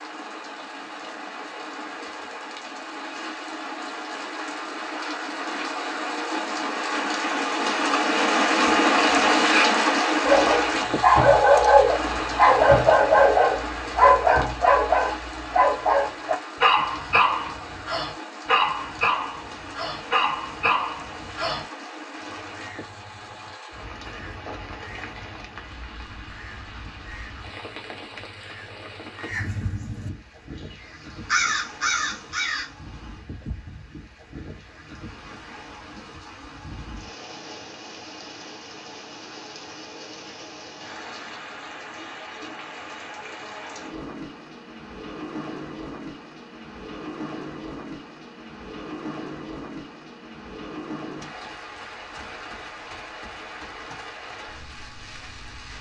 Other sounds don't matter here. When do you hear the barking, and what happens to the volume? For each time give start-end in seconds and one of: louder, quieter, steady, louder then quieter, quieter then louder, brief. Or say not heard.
10.2-21.6 quieter.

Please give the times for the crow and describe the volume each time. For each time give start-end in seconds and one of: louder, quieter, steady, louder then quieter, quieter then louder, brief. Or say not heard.
22.1-32.7 louder.